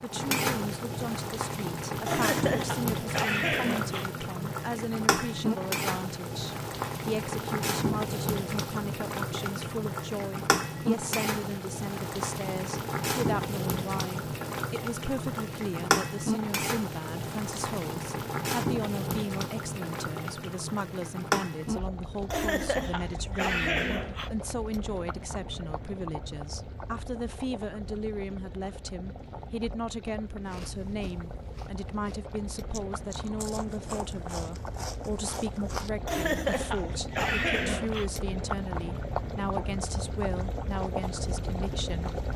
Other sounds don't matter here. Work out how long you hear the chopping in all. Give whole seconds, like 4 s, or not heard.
not heard.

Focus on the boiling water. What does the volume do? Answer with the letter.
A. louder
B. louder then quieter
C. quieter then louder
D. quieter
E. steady
C.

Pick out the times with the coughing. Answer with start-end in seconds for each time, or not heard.
2.0-4.0, 22.3-24.3, 36.0-38.0.